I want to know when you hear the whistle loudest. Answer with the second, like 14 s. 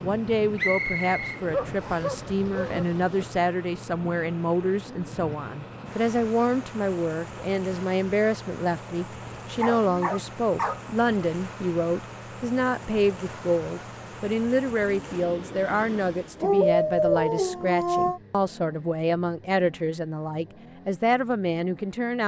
1 s.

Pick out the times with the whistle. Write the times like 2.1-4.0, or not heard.
0.6-2.1.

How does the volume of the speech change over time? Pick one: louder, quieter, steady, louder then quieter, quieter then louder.
steady.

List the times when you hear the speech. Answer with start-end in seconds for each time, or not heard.
0.0-22.2.